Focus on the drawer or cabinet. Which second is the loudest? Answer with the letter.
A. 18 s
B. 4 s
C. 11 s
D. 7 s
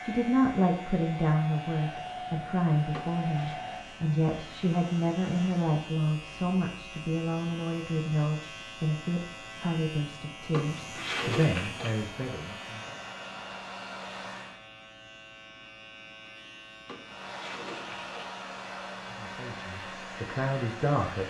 C.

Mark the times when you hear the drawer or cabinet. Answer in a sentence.
The drawer or cabinet can be heard from 2.9 to 3.6 s, from 10.5 to 12.0 s and from 16.9 to 18.1 s.